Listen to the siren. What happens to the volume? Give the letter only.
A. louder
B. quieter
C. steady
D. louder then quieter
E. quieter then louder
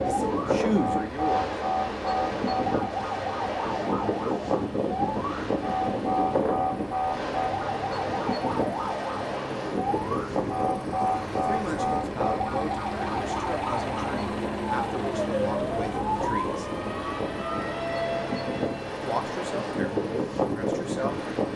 C.